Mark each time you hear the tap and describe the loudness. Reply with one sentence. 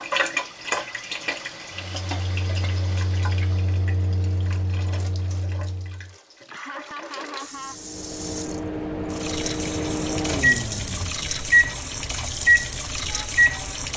The tap can be heard from 0.0 to 13.9 s, getting quieter then louder.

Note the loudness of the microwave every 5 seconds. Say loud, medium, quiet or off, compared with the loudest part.
quiet, medium, loud.